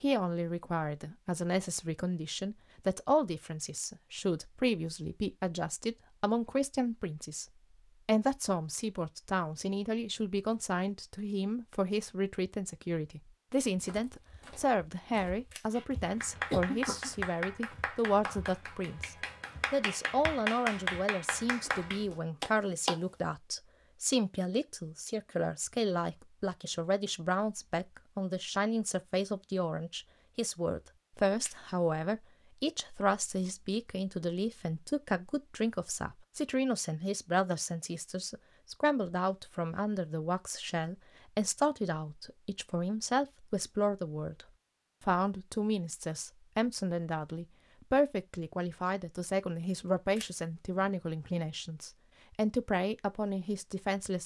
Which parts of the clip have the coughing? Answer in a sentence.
The coughing can be heard from 16.3 to 17.1 s.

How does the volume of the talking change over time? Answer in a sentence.
The loudness of the talking stays about the same.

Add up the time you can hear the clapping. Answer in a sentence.
The clapping can be heard for 7 seconds in total.